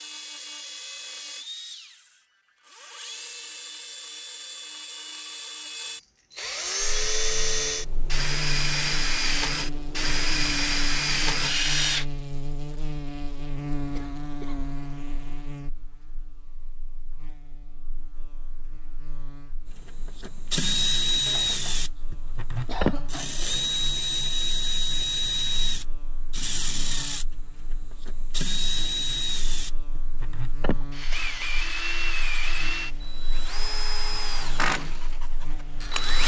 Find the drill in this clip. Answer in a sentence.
You can hear the drill from 0.0 to 12.1 s and from 19.7 to 36.2 s.